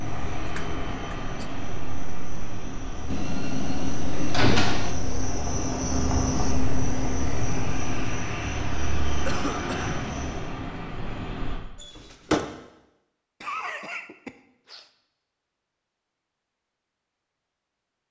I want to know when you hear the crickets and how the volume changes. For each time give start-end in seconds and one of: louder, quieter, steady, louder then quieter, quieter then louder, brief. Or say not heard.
0.0-10.5 louder then quieter.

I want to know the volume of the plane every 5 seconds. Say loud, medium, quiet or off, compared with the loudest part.
loud, loud, loud, off.